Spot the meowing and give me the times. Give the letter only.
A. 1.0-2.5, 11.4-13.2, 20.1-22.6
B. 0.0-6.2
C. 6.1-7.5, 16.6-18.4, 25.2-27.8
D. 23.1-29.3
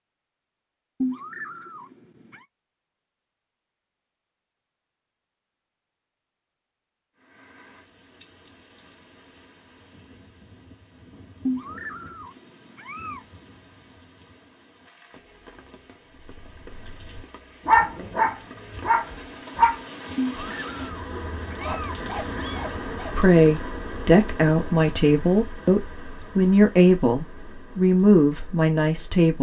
A.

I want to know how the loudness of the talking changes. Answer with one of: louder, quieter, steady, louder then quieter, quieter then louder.
steady.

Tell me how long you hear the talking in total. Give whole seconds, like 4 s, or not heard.
6 s.